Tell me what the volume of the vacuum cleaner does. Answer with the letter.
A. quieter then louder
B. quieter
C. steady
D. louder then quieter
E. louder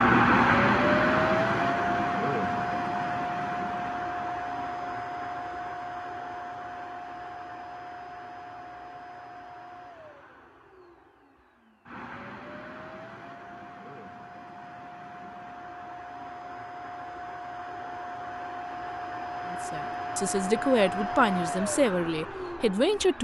A.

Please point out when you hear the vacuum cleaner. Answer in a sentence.
The vacuum cleaner can be heard from 0.0 to 23.1 s.